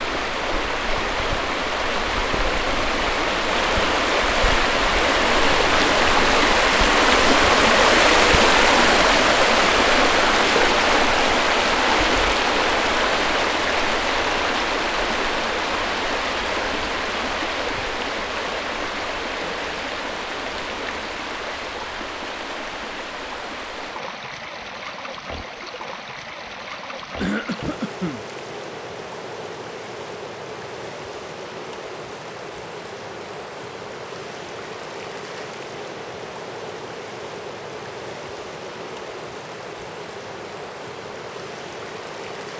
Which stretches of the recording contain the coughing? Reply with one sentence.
You can hear the coughing from 27.2 to 28.2 s.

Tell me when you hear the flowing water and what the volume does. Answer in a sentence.
You can hear the flowing water from 0.0 to 42.5 s, getting quieter.